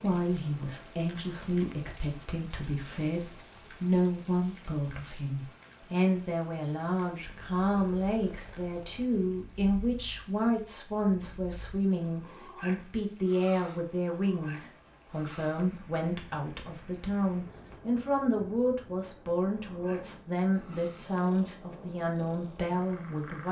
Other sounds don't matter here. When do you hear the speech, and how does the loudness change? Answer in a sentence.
The speech can be heard from 0.0 to 23.4 s, at a steady volume.